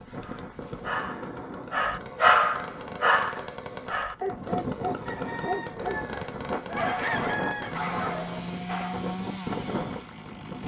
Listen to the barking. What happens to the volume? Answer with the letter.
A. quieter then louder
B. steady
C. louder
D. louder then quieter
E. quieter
D.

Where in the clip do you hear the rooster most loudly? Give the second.
7 s.